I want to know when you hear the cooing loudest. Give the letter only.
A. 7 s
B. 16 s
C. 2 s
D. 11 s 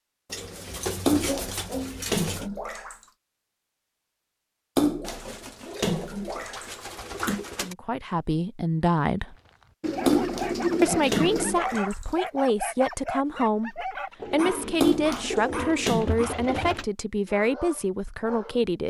D.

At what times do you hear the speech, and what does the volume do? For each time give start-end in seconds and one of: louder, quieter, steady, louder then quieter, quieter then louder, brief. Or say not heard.
7.6-9.3 brief
10.8-18.8 steady.